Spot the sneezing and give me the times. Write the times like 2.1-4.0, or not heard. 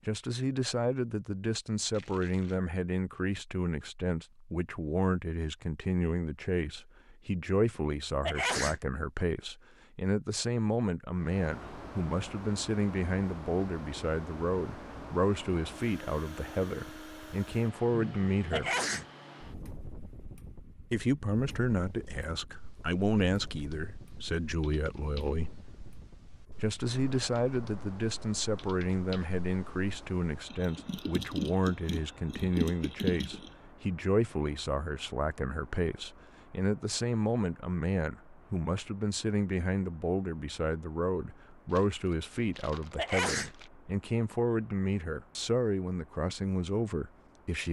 8.2-8.8, 18.5-19.1, 43.0-43.5.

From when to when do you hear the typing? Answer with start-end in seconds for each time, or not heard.
21.7-33.5.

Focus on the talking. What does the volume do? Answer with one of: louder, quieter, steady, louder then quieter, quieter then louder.
steady.